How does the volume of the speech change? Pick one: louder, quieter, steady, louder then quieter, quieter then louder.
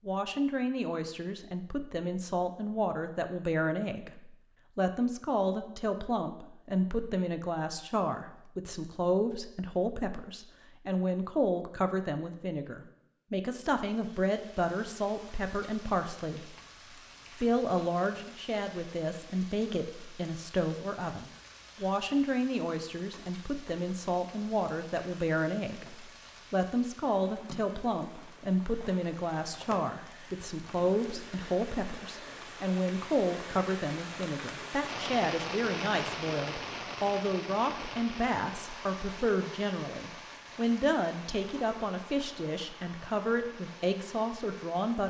steady.